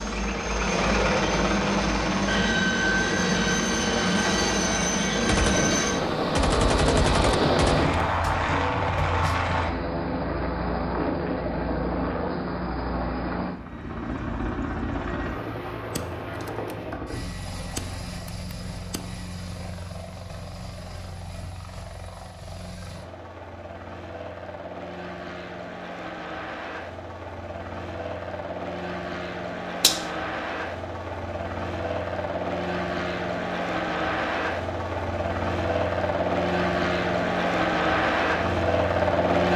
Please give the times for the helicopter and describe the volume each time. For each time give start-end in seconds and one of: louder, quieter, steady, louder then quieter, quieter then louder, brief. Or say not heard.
0.0-39.5 quieter then louder.